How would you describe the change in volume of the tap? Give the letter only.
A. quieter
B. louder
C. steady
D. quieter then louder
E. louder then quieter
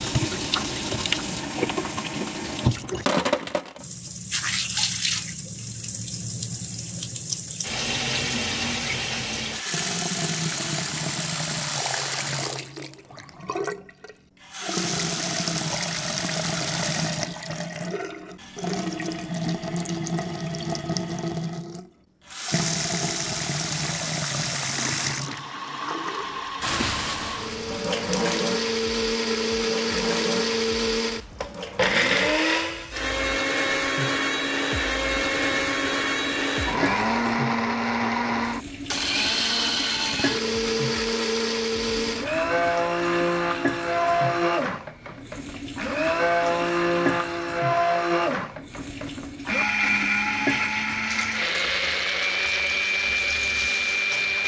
A.